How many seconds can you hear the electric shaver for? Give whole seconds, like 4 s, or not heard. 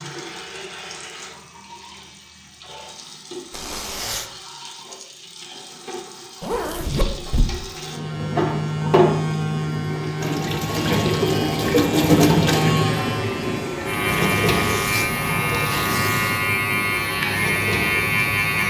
11 s.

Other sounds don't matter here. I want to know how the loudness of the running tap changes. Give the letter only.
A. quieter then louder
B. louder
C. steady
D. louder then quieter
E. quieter
D.